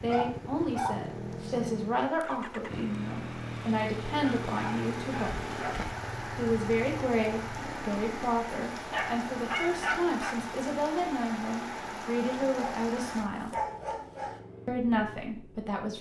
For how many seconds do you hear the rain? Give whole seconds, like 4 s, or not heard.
13 s.